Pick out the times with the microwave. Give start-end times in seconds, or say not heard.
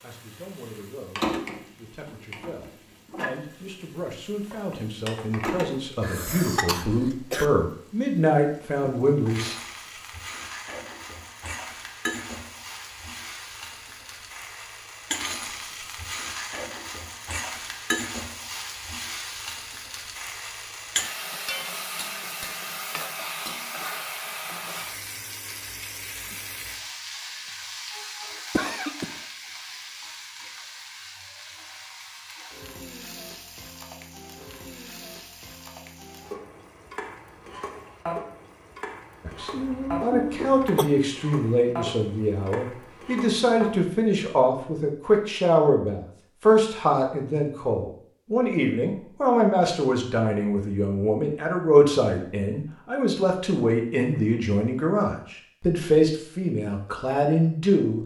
not heard.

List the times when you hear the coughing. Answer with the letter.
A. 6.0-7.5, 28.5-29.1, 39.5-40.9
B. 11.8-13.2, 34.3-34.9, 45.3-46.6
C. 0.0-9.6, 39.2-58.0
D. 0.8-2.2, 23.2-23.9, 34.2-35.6
A.